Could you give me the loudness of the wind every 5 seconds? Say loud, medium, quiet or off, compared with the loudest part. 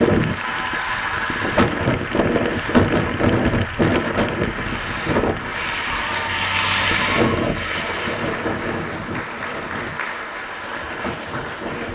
loud, loud, quiet.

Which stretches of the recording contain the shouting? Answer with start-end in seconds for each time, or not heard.
not heard.